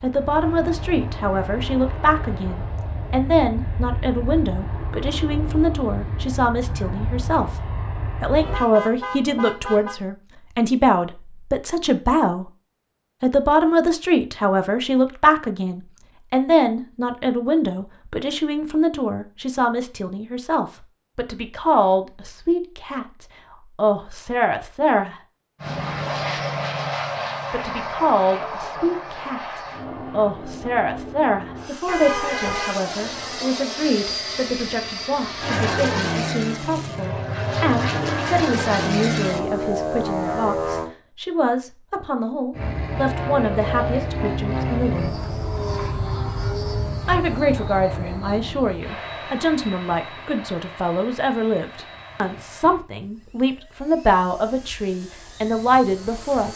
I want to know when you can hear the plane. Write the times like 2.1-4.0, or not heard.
0.0-8.7, 25.6-40.9, 42.5-56.5.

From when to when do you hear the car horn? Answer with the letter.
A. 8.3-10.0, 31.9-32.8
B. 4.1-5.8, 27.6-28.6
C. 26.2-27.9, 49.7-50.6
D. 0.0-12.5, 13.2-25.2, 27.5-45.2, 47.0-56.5
A.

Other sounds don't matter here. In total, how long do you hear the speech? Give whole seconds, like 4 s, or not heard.
52 s.